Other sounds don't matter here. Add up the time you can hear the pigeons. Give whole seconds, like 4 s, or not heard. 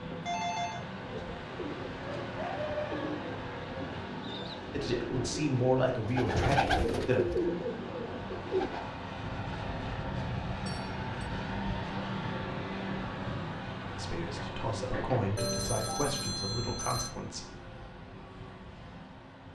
8 s.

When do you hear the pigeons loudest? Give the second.
7 s.